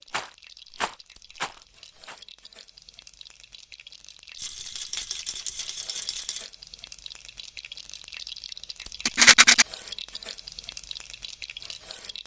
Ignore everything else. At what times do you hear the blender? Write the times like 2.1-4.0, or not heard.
not heard.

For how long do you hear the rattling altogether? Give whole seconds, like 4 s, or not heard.
5 s.